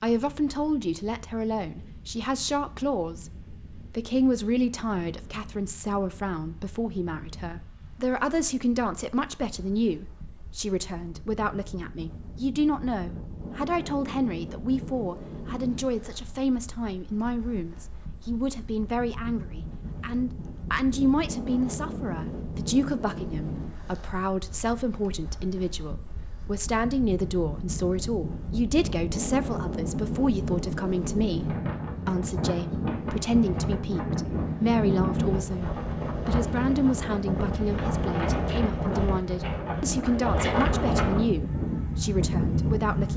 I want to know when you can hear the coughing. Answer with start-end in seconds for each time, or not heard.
not heard.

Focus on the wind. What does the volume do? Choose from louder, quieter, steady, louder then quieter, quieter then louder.
louder.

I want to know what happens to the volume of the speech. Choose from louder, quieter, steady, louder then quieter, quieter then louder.
steady.